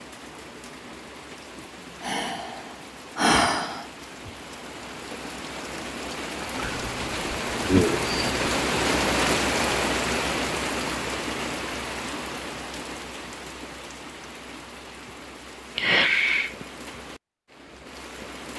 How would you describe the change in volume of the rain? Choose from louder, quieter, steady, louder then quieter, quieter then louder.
louder then quieter.